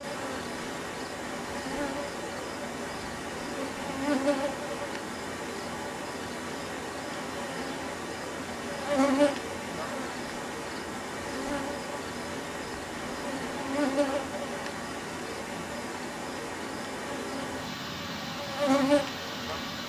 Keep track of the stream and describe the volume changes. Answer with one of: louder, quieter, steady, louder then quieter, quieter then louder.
steady.